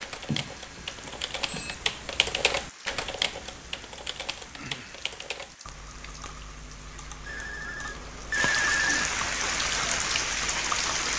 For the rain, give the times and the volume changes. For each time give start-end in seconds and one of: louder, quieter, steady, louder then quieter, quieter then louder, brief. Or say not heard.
0.0-11.1 louder.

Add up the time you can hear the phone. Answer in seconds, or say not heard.
3 s.